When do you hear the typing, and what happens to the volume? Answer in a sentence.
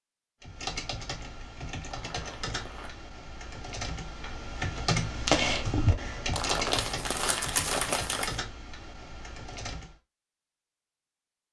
The typing can be heard from 0.4 to 9.9 s, getting louder then quieter.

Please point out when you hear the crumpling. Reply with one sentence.
You can hear the crumpling from 1.9 to 3.0 s and from 6.3 to 8.4 s.